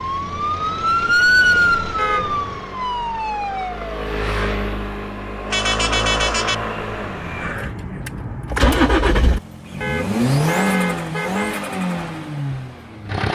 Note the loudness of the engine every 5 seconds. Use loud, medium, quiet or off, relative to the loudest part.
medium, loud, loud.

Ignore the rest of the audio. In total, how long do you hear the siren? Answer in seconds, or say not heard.
4 s.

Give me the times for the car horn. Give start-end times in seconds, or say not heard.
1.9-2.4, 5.5-6.7, 9.8-11.7.